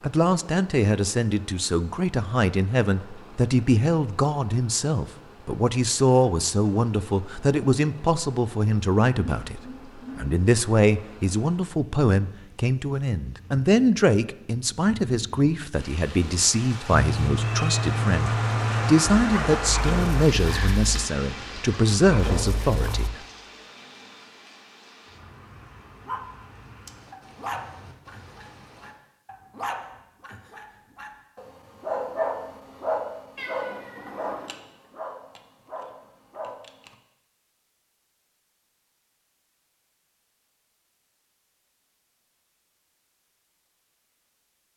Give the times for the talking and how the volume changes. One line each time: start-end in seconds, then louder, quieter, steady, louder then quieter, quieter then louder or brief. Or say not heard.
0.0-23.2 steady.